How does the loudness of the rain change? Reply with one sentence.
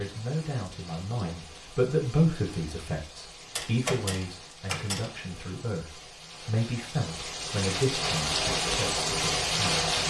The volume of the rain goes up.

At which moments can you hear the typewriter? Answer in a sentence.
You can hear the typewriter from 3.5 to 5.2 s.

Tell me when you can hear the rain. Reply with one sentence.
You can hear the rain from 0.0 to 10.0 s.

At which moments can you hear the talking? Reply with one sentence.
The talking can be heard from 0.0 to 10.0 s.